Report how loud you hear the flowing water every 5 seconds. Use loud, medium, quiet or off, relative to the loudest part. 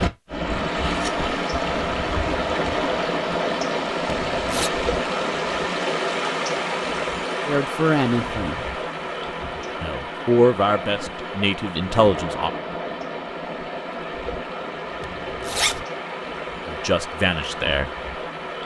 loud, loud, medium, medium.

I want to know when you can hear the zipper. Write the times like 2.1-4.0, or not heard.
4.0-4.7, 15.0-15.8.